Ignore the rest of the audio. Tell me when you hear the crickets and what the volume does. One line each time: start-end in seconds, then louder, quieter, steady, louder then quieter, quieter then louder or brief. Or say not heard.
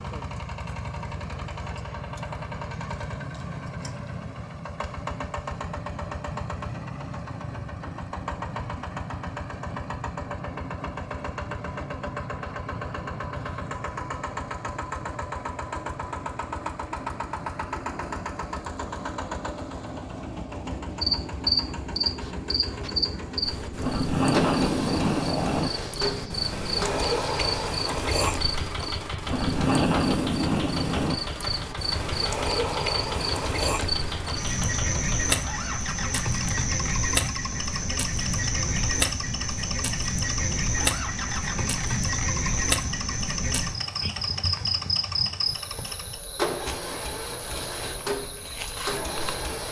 21.0-49.6 quieter.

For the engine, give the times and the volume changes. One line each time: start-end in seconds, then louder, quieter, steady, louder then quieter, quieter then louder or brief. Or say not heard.
0.0-49.6 steady.